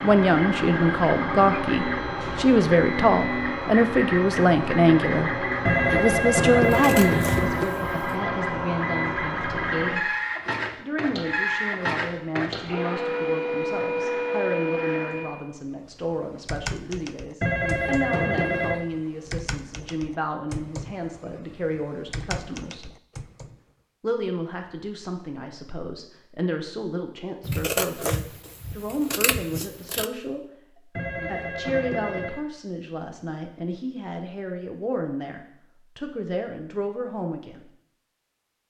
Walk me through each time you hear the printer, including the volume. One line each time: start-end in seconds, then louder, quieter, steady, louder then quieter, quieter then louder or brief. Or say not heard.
0.0-15.4 steady.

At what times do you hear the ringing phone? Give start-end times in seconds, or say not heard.
5.7-7.7, 17.4-18.9, 30.9-32.4.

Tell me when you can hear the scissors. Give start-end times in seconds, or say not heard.
6.6-8.1, 27.4-30.1.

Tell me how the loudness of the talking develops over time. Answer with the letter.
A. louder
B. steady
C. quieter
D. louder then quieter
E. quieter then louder
C.